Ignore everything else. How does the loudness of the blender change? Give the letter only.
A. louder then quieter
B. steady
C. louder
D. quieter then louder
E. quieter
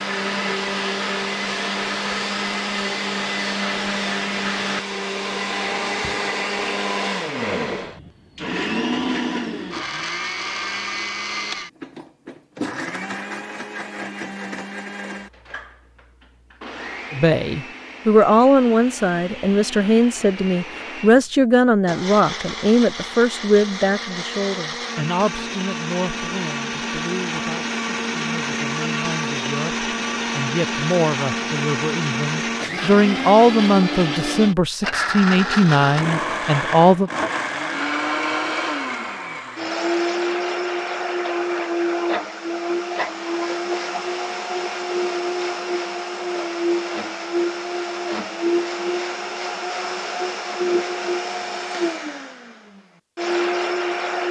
D.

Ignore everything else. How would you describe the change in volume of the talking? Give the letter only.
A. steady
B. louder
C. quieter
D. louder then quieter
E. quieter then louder
E.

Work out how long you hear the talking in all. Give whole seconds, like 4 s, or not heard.
20 s.